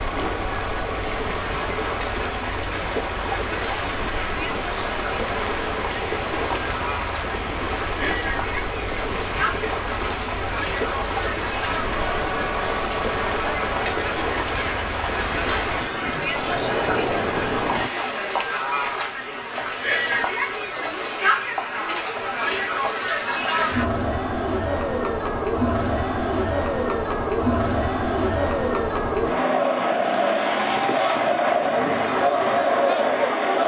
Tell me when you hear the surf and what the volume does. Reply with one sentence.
The surf can be heard from 0.0 to 17.9 s, at a steady volume.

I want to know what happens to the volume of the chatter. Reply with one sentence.
The loudness of the chatter goes up.